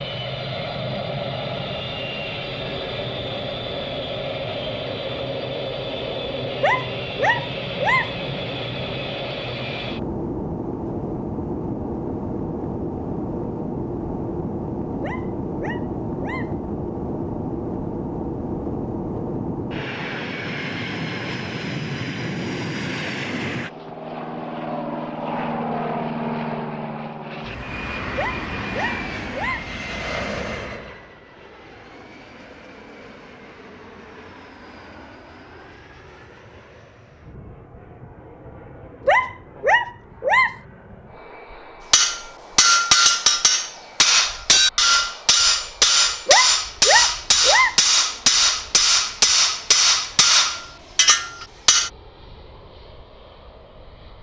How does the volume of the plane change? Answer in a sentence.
The loudness of the plane goes down.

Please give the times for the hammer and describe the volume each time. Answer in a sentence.
You can hear the hammer from 41.9 to 51.9 s, at a steady volume.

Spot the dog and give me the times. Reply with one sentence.
You can hear the dog from 6.6 to 8.2 s, from 15.0 to 16.6 s, from 28.1 to 29.6 s, from 39.0 to 40.5 s and from 46.2 to 47.8 s.